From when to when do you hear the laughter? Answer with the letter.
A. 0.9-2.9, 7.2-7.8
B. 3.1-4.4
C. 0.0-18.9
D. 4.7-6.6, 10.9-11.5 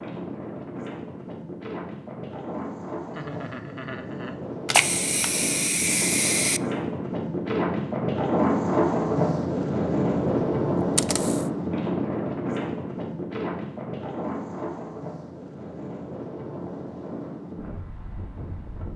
B.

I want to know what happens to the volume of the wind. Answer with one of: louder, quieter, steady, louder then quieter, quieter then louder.
louder then quieter.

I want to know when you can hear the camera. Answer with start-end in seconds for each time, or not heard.
4.7-6.6, 10.9-11.5.